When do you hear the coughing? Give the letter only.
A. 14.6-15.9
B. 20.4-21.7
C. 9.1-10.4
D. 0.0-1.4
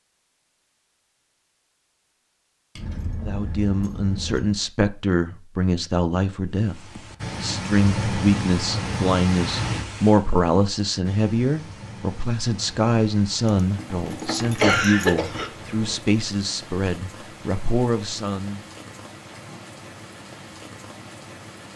A.